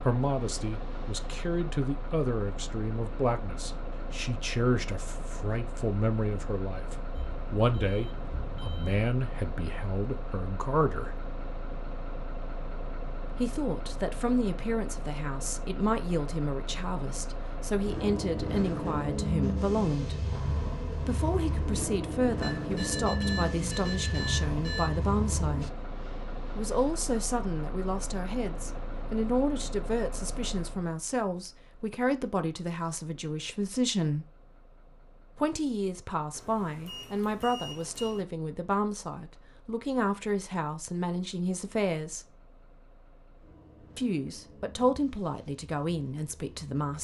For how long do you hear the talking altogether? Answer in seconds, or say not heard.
40 s.